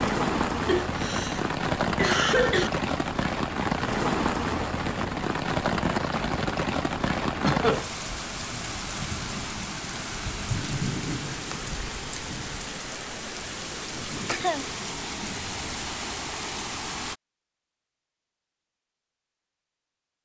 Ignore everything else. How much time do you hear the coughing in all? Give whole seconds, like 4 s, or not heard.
3 s.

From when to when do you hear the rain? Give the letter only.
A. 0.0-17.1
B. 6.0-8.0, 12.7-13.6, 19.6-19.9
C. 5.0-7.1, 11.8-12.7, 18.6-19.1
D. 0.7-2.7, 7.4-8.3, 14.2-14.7
A.